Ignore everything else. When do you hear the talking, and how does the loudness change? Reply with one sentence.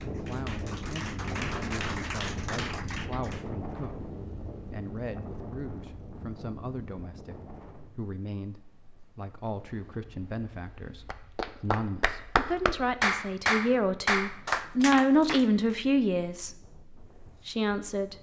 The talking can be heard from 0.1 to 18.1 s, getting louder.